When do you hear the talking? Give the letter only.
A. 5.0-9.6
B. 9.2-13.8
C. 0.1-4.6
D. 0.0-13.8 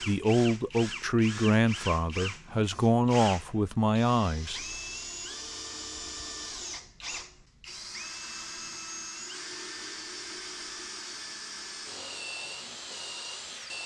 C.